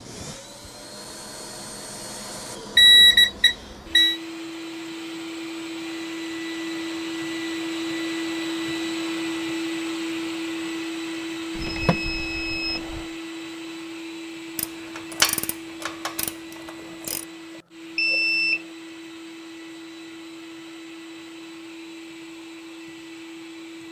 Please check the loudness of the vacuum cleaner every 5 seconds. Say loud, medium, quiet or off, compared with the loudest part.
medium, loud, loud, medium, medium.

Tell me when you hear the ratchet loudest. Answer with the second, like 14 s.
15 s.